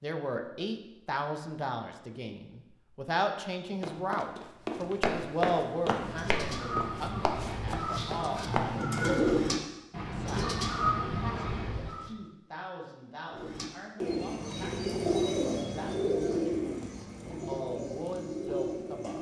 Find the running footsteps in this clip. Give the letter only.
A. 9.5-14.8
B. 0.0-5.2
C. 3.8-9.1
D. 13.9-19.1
C.